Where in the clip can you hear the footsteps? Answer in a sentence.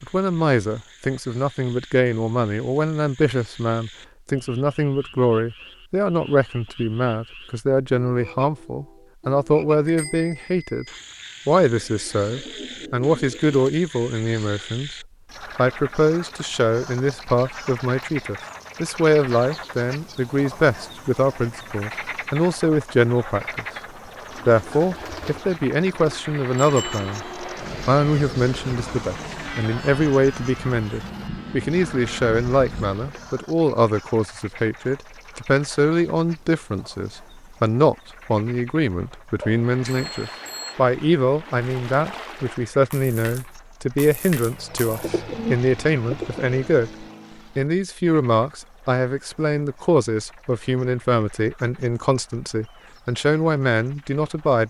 You can't hear the footsteps here.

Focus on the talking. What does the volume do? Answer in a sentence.
The loudness of the talking stays about the same.